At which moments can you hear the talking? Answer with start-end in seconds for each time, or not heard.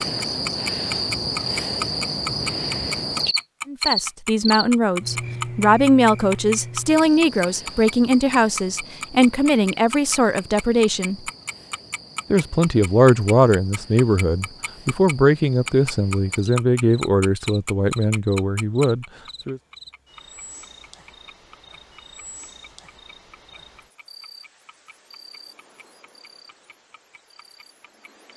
3.6-11.2, 12.3-19.6.